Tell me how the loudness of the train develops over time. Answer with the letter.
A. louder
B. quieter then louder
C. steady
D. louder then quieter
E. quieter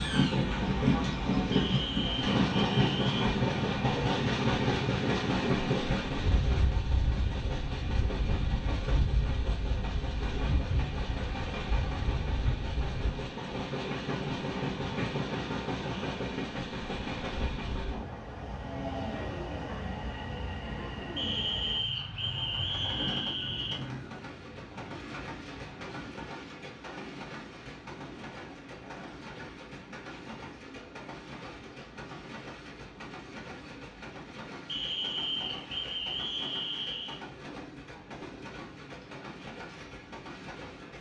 E.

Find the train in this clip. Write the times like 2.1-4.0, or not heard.
0.0-40.9.